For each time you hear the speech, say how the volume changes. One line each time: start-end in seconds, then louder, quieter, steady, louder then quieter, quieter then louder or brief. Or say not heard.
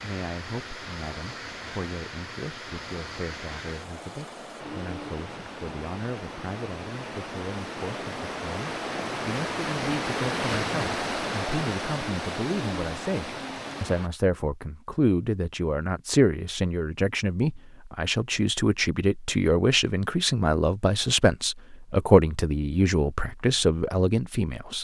0.0-24.7 louder.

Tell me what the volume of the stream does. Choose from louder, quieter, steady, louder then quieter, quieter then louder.
louder.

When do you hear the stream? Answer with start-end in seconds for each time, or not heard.
0.0-14.1.